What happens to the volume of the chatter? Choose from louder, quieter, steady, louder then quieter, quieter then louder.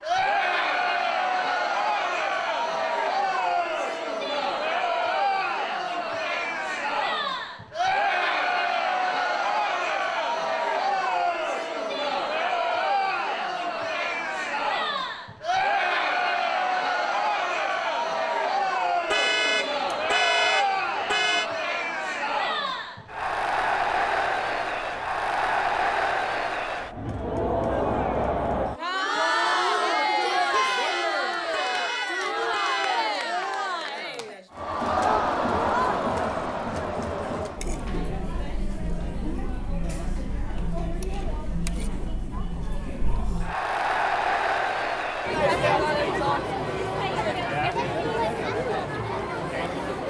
steady.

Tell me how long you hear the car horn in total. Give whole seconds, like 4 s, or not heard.
5 s.